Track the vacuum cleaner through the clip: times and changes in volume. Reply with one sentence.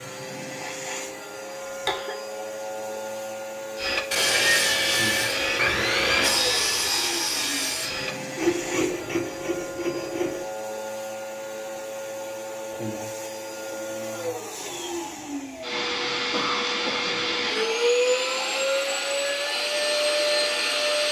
You can hear the vacuum cleaner from 0.0 to 21.0 s, getting louder.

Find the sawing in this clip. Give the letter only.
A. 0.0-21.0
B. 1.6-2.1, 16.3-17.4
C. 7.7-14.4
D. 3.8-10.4
D.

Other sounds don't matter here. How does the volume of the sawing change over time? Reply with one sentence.
The loudness of the sawing goes down.